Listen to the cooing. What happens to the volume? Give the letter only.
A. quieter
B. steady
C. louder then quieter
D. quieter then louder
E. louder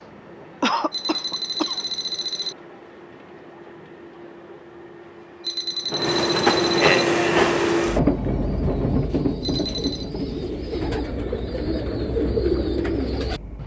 E.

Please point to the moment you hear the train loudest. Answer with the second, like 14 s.
7 s.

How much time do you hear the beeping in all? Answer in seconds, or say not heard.
4 s.